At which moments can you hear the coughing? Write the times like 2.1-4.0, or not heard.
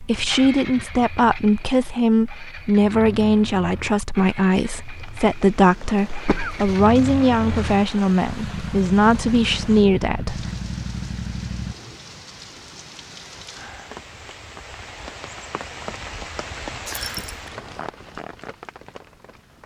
5.8-6.8.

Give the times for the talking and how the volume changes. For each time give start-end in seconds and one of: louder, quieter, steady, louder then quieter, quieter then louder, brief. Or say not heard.
0.0-10.4 steady.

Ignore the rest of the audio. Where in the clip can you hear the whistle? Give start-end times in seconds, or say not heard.
16.9-17.5.